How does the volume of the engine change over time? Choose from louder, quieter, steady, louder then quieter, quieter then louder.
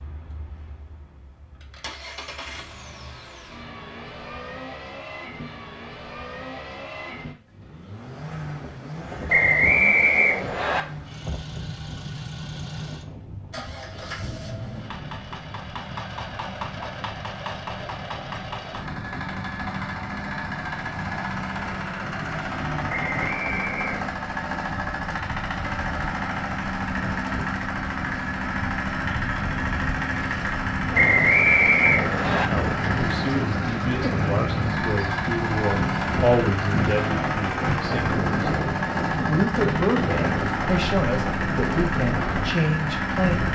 louder.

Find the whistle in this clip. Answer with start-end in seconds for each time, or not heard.
9.2-10.8, 22.9-24.1, 30.9-32.5.